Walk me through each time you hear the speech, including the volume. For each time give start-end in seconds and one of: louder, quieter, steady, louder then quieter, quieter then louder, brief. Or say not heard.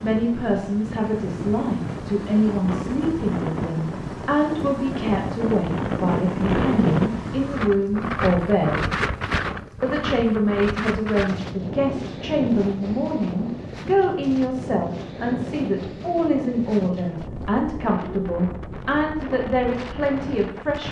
0.0-8.8 steady
9.8-20.8 steady.